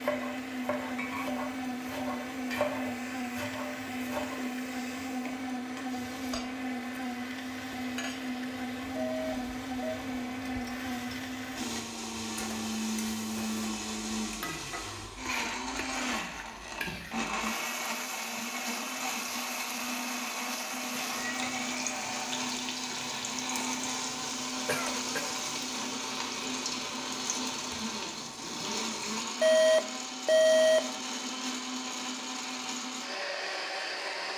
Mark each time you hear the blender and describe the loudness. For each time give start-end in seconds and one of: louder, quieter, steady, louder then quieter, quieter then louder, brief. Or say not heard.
0.0-34.3 steady.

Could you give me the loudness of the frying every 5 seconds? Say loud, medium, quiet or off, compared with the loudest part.
medium, medium, medium, loud, loud, loud, off.